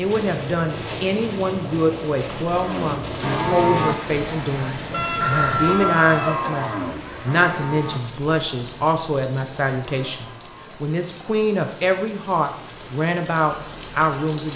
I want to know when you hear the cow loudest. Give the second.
4 s.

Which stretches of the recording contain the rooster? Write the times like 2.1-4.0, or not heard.
4.9-6.5.